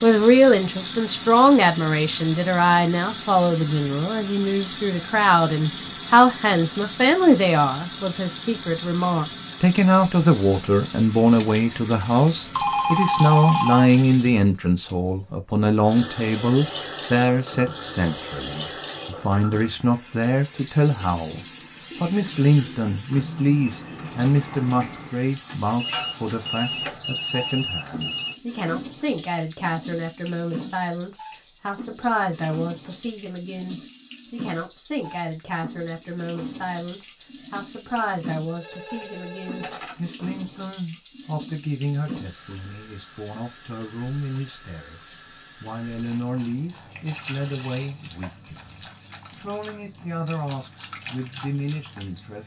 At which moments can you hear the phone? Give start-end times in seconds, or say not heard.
12.6-13.9, 25.8-28.4, 38.5-40.0.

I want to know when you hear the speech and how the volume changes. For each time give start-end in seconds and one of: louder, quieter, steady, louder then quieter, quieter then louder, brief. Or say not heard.
0.0-52.4 quieter.